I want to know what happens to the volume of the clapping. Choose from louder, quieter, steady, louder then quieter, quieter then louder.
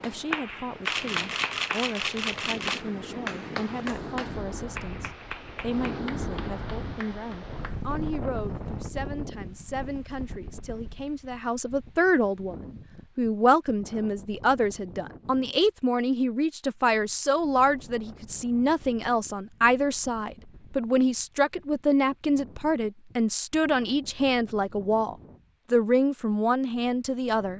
quieter.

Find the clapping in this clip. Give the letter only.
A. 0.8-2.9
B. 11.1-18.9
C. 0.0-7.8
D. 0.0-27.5
C.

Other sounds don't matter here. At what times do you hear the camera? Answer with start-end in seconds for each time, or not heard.
0.8-2.9.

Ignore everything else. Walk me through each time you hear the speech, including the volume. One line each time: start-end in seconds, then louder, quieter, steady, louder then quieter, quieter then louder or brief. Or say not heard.
0.0-27.5 louder.